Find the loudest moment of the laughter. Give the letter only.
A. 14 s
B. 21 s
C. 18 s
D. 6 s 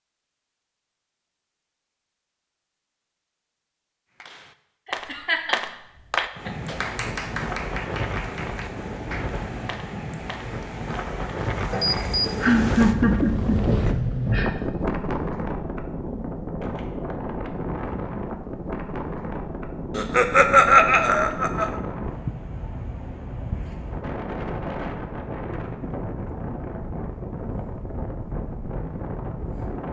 B.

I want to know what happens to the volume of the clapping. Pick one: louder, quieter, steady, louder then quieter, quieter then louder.
quieter.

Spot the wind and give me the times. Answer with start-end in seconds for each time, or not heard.
6.3-29.8.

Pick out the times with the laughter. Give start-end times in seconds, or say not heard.
4.8-6.5, 12.2-14.6, 19.9-21.7.